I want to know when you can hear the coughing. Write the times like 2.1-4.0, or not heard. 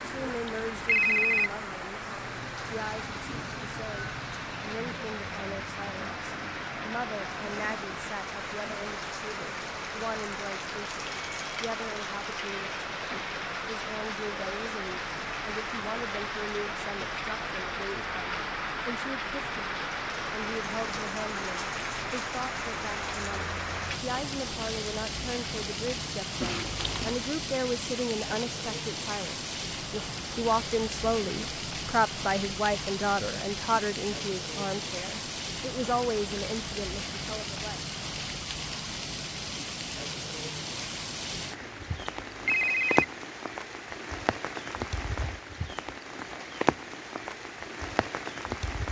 not heard.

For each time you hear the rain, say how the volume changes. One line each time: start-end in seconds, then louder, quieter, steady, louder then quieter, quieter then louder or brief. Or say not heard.
0.0-48.8 steady.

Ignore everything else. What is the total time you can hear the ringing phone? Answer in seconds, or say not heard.
4 s.